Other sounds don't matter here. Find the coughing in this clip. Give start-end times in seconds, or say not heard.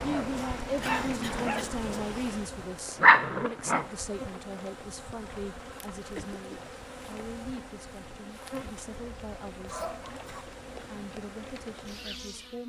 0.8-1.8, 6.2-6.8, 9.7-10.5.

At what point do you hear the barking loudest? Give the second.
3 s.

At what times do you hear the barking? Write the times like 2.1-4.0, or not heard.
0.0-3.9.